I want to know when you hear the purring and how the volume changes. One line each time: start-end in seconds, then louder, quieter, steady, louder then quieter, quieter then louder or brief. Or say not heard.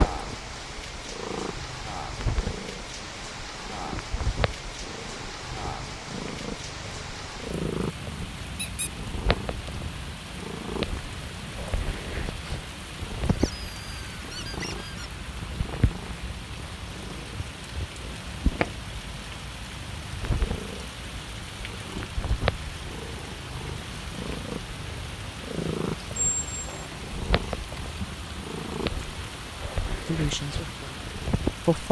0.0-31.7 steady.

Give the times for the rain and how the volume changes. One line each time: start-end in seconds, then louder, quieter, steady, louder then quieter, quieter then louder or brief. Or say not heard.
0.0-31.8 steady.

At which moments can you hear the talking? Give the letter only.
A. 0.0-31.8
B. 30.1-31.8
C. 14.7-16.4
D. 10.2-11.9
B.